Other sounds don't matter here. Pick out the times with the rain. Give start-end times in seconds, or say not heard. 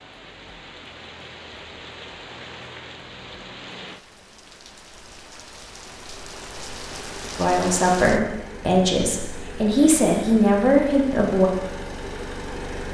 0.0-8.2.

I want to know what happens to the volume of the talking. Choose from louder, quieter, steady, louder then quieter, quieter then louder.
quieter then louder.